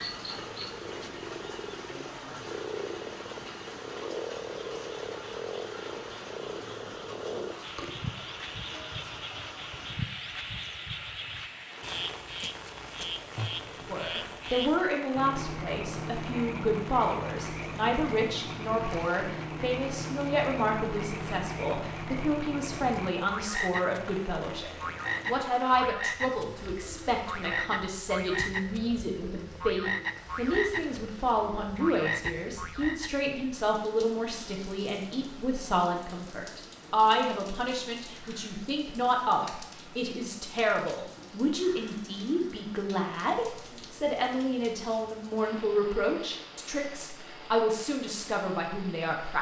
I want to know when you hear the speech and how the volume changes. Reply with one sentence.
The speech can be heard from 13.7 to 49.3 s, at a steady volume.